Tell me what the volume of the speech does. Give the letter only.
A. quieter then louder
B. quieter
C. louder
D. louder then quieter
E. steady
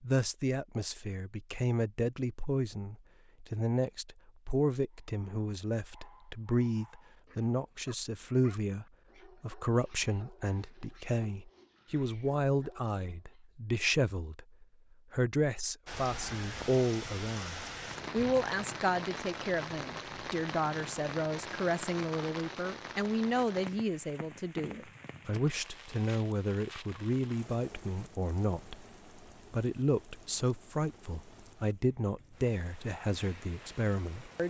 E.